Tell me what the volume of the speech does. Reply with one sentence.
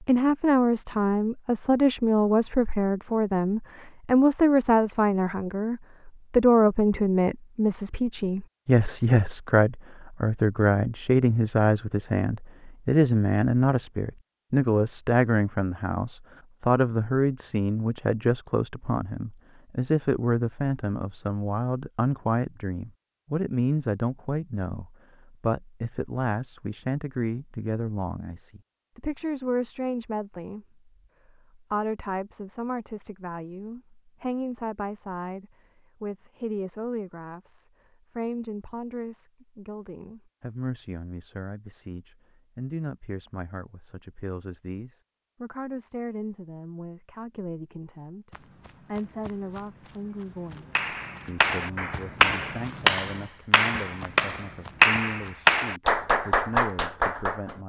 The volume of the speech goes down.